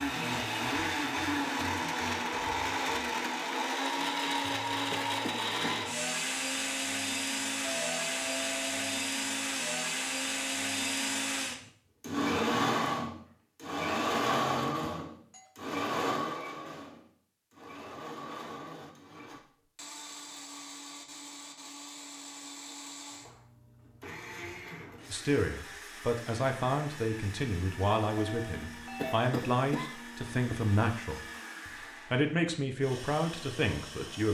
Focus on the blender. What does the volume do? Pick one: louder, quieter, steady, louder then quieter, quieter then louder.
quieter.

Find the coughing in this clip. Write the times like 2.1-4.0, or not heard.
4.9-5.8, 28.9-30.6.